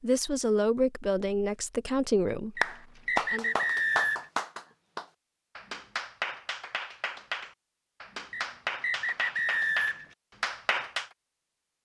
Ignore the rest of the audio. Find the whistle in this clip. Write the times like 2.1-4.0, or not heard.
2.5-4.3, 8.3-10.2.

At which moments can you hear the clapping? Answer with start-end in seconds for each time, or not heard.
2.6-11.1.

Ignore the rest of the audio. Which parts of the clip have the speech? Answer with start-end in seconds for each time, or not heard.
0.0-3.5.